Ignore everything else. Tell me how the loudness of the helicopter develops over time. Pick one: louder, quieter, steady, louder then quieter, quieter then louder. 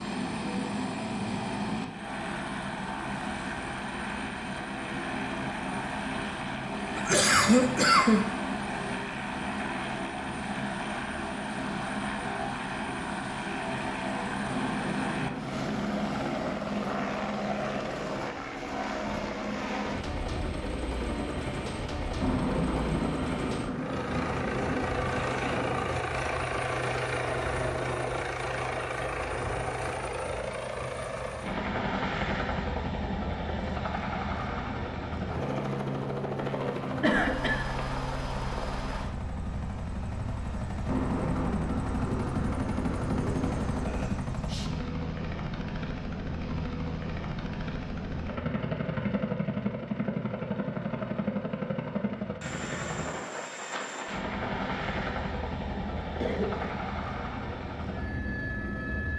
steady.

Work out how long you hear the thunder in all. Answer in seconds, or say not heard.
11 s.